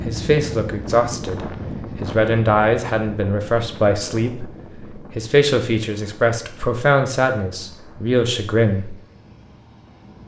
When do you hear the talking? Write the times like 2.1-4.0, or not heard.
0.0-8.9.